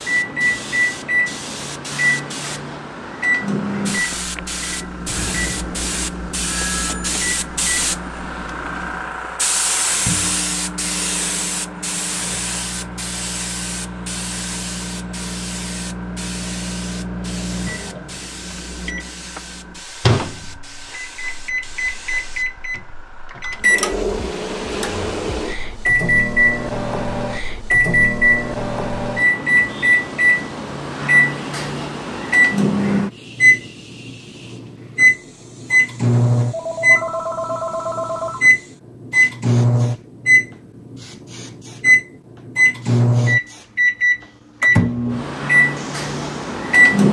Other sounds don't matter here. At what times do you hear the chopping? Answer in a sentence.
You can't hear the chopping here.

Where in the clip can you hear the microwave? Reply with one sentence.
The microwave can be heard from 0.0 to 47.0 s.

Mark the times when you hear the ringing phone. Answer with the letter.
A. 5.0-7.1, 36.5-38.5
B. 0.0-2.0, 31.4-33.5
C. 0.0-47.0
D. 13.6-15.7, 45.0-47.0
A.